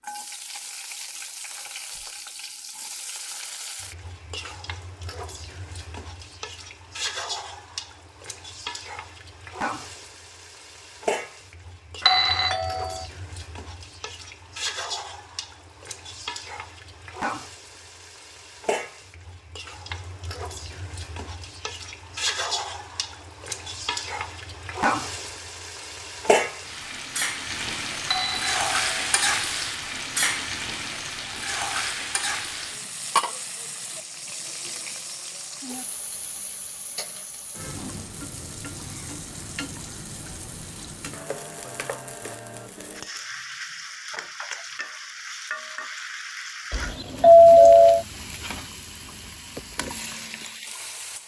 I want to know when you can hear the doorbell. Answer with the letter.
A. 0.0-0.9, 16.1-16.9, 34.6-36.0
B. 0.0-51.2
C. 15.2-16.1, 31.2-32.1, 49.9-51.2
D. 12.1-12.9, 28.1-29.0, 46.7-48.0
D.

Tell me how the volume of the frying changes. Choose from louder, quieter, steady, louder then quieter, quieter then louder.
louder then quieter.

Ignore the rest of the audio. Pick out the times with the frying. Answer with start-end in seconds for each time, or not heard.
0.0-51.2.